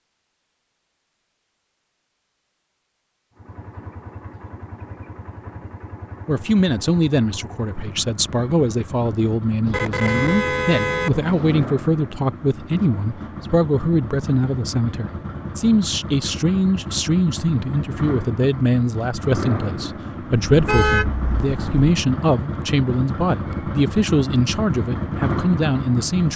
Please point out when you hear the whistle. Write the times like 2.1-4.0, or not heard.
not heard.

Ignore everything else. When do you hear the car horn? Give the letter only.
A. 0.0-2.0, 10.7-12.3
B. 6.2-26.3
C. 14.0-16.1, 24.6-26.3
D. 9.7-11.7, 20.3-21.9
D.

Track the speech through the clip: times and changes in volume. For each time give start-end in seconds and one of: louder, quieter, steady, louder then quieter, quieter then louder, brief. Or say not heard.
6.2-26.3 steady.